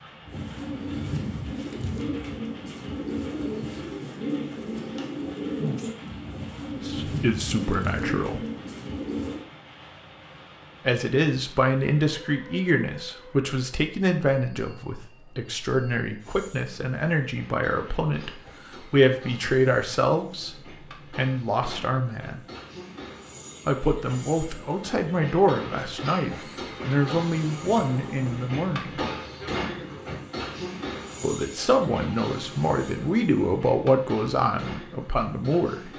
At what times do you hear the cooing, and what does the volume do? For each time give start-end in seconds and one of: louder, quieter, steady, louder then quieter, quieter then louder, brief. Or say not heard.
0.2-9.4 steady.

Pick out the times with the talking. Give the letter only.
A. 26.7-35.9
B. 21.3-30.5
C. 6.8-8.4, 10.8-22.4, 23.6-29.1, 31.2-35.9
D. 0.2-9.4
C.